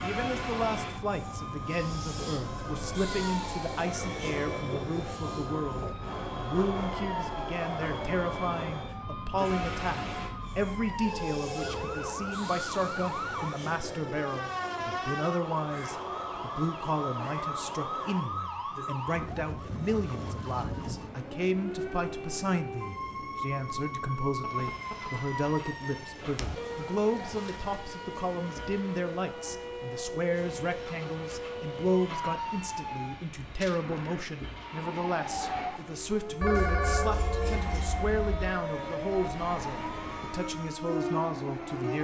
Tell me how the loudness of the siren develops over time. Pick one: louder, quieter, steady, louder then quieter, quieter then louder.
steady.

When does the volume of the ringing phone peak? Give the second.
37 s.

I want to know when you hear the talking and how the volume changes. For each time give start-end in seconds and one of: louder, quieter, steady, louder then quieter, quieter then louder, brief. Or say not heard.
0.0-41.9 steady.